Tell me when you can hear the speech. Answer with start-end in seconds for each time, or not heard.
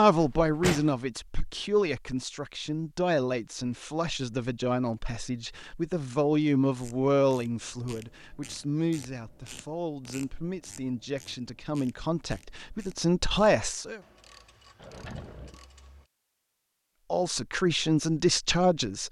0.0-14.0, 17.1-19.0.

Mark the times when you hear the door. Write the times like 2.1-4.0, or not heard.
0.2-0.9, 14.8-15.6.